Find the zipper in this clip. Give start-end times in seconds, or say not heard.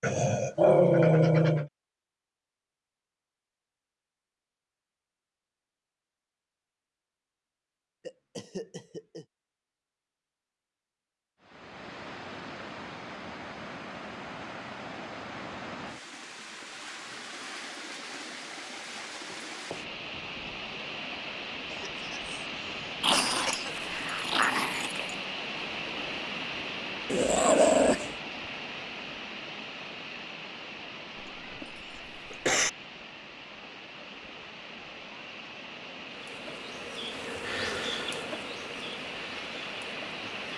not heard.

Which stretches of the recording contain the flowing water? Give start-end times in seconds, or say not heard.
11.4-40.5.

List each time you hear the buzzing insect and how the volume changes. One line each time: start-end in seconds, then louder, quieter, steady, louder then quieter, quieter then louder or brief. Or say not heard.
36.1-40.5 louder then quieter.